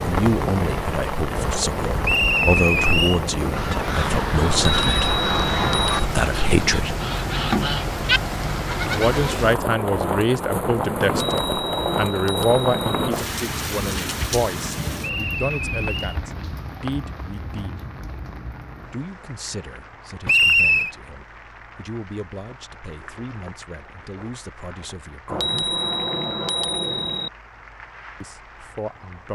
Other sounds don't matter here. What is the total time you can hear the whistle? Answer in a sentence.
You can hear the whistle for 3 seconds altogether.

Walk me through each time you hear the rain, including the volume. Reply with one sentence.
You can hear the rain from 0.0 to 29.3 s, getting quieter.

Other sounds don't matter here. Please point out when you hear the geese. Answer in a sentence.
The geese can be heard from 3.4 to 9.4 s.